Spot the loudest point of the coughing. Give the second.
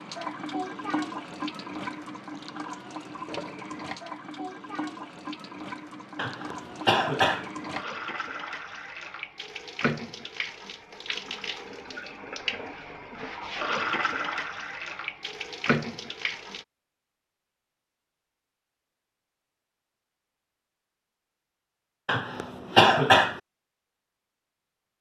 23 s.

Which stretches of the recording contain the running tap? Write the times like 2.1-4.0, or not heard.
0.0-16.6.